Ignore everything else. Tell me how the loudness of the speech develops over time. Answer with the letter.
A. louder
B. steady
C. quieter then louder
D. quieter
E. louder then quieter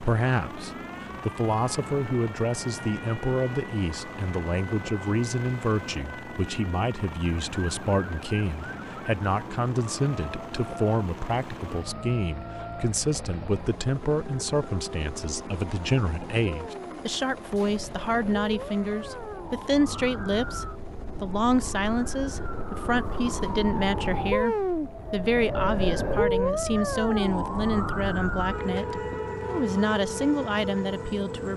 B.